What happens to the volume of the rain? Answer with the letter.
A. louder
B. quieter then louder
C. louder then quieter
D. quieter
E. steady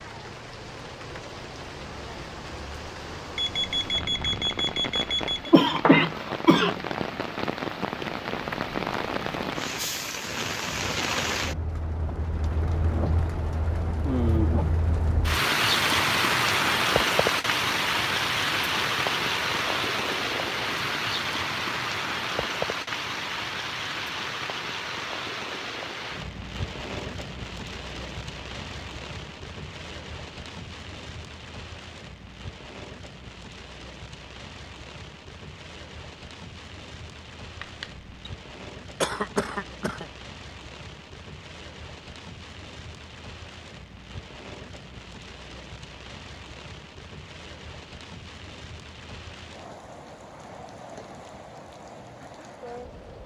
C.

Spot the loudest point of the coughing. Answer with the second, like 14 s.
6 s.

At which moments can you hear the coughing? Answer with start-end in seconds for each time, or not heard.
5.5-6.8, 39.0-40.0.